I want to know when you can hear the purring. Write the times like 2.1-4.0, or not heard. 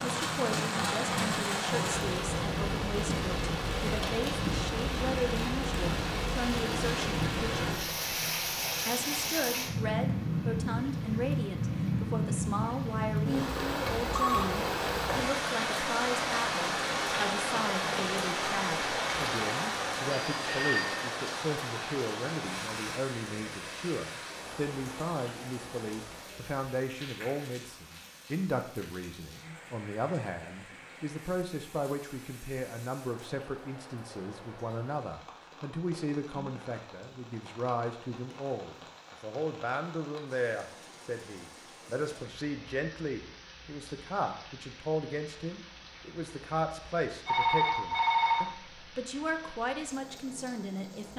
not heard.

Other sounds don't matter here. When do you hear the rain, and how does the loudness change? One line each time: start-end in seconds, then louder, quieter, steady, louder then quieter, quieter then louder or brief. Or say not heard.
0.0-51.1 quieter.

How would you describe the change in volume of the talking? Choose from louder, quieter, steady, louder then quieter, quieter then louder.
steady.